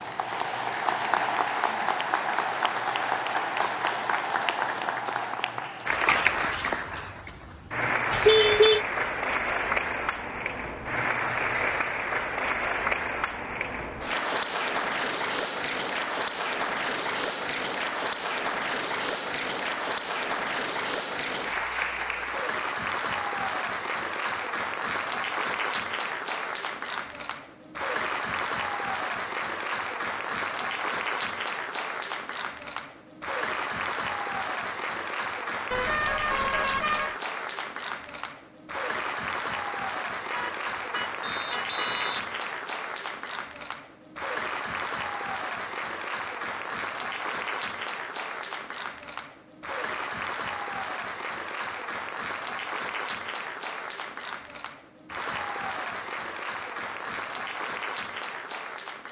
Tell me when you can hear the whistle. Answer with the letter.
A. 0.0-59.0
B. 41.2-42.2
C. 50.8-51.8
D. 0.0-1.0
B.